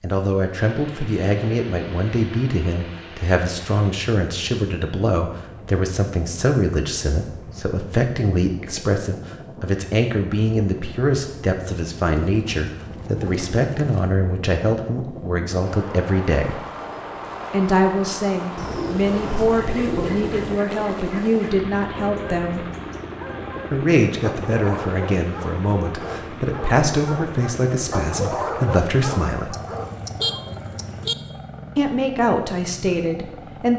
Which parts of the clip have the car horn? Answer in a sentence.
You can hear the car horn from 29.5 to 31.1 s.